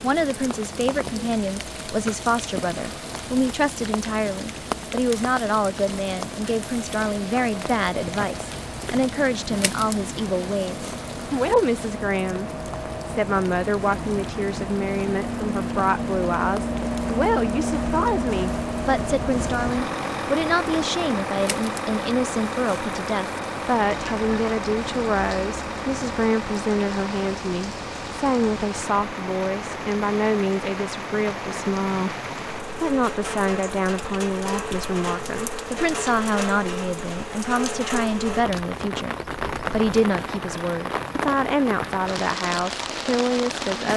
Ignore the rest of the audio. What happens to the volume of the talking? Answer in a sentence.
The loudness of the talking stays about the same.